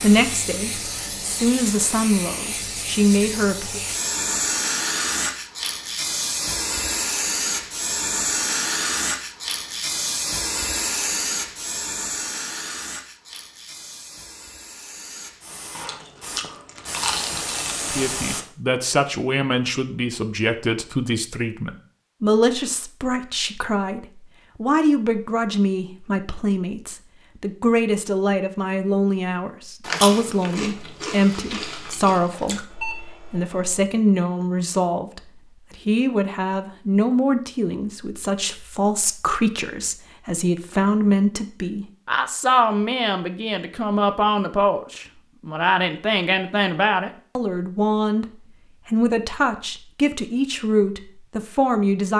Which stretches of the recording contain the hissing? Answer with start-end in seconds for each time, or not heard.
0.0-18.4.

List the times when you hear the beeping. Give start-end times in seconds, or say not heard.
32.7-33.8.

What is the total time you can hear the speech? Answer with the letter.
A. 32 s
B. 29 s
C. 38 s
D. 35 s
C.